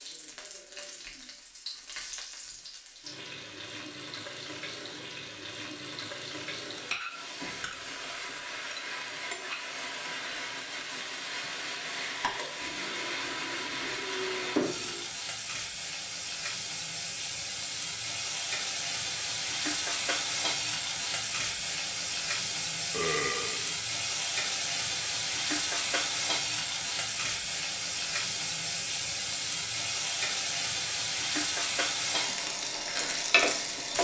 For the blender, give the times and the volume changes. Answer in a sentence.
You can't hear the blender here.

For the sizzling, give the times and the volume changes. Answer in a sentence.
The sizzling can be heard from 0.0 to 34.0 s, getting louder.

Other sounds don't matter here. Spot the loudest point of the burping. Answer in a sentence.
The loudest moment of the burping is at 23 seconds.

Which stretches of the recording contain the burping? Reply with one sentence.
You can hear the burping from 7.4 to 8.7 s, from 12.6 to 15.1 s and from 22.9 to 23.8 s.